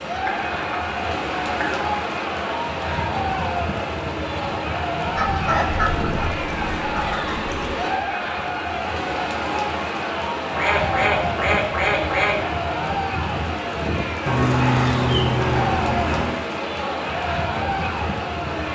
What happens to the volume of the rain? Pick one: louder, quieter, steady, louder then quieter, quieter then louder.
steady.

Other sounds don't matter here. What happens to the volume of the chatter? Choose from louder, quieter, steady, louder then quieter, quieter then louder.
steady.